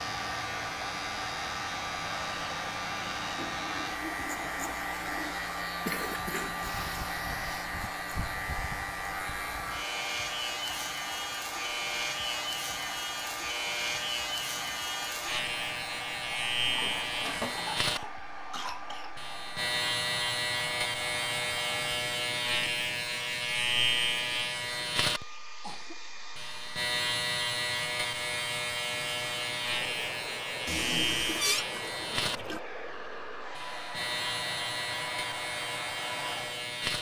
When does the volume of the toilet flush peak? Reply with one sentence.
The volume of the toilet flush peaks at 31 seconds.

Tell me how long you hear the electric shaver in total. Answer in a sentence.
You can hear the electric shaver for 37 seconds altogether.